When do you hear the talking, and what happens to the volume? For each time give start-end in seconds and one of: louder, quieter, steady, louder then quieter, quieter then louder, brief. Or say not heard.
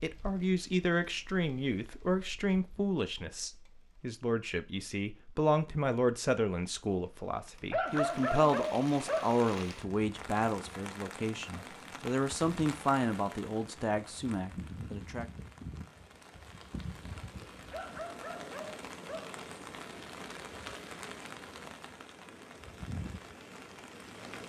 0.0-15.2 steady.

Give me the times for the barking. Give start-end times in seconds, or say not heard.
7.7-9.4, 17.7-19.4.